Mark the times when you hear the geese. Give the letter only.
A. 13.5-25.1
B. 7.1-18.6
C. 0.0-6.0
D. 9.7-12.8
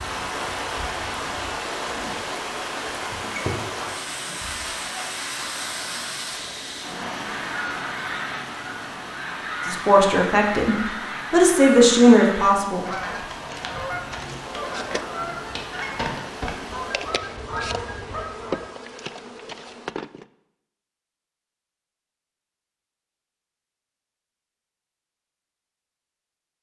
B.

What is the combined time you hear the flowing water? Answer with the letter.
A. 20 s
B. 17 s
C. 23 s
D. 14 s
B.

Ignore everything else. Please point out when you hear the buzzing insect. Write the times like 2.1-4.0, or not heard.
14.2-20.2.